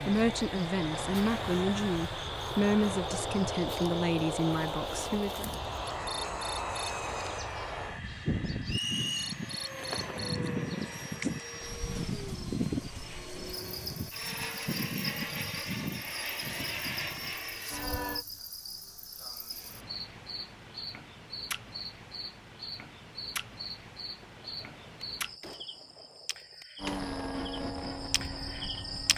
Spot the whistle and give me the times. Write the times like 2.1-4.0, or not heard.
8.7-9.3.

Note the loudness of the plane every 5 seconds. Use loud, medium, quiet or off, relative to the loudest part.
loud, loud, loud, loud, off, loud.